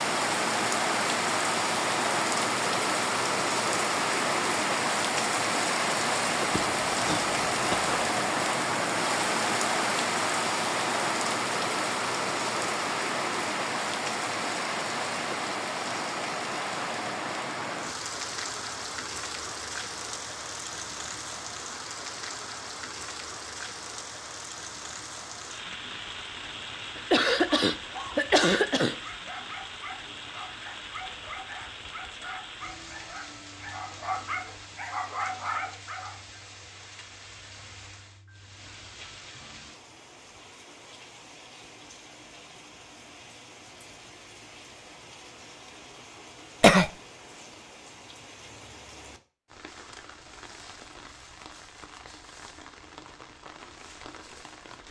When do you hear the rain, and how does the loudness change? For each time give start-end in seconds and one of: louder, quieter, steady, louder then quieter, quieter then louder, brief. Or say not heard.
0.0-54.8 quieter.